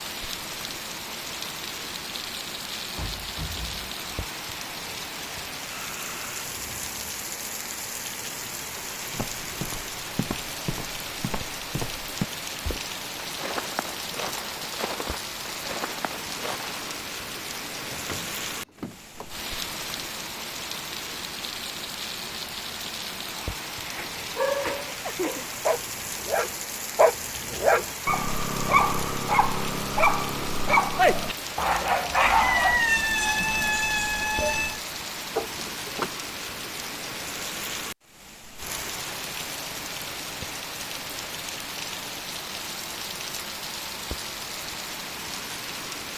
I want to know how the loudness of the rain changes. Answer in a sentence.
The volume of the rain stays about the same.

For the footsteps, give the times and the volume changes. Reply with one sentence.
The footsteps can be heard from 9.1 to 17.0 s, at a steady volume.